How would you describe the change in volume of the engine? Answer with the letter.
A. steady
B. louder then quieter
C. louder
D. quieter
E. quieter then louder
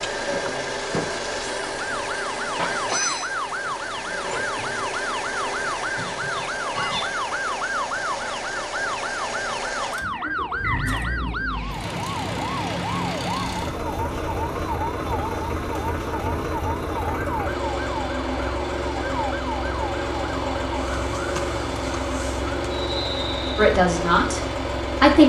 A.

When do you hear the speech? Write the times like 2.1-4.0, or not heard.
23.6-25.2.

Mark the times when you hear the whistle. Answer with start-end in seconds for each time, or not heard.
10.1-11.1, 22.7-23.8.